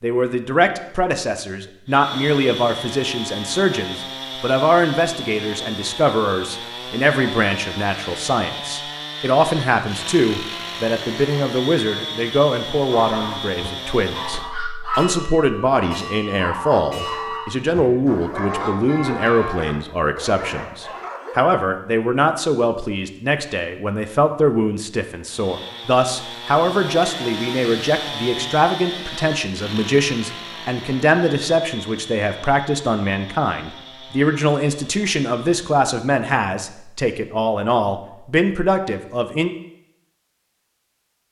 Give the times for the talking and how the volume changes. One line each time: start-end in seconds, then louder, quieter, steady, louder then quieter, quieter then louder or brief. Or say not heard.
0.0-39.5 steady.